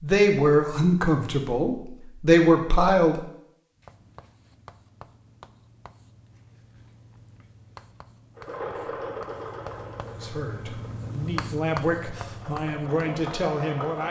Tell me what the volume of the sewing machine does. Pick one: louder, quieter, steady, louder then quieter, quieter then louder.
quieter then louder.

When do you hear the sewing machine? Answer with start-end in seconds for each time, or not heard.
8.3-14.0.